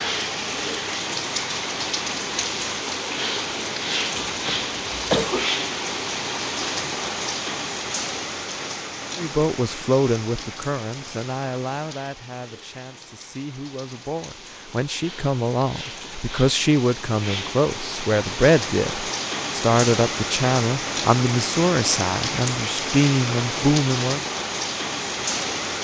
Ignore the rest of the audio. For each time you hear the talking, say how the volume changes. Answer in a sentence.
The talking can be heard from 9.2 to 24.2 s, getting quieter then louder.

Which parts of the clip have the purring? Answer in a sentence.
You can't hear the purring here.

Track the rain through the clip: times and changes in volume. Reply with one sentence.
The rain can be heard from 0.0 to 25.7 s, getting quieter then louder.